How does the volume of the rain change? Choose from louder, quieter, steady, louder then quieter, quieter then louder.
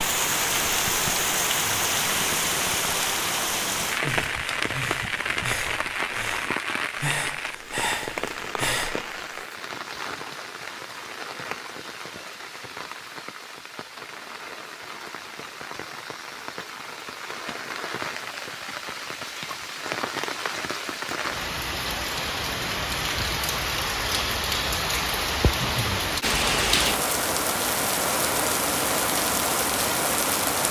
quieter then louder.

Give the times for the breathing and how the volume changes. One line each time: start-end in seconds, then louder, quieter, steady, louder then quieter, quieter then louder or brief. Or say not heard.
3.9-9.4 louder.